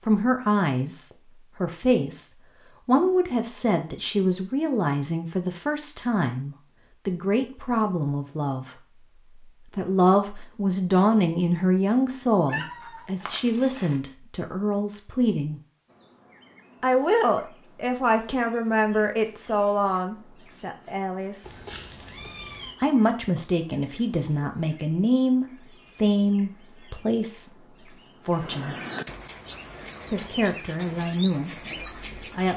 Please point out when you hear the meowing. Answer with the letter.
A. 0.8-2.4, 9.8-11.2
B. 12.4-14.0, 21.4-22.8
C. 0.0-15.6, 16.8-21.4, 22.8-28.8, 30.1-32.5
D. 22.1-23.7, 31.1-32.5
B.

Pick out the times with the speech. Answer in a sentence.
You can hear the speech from 0.0 to 15.6 s, from 16.8 to 21.4 s, from 22.8 to 28.8 s and from 30.1 to 32.5 s.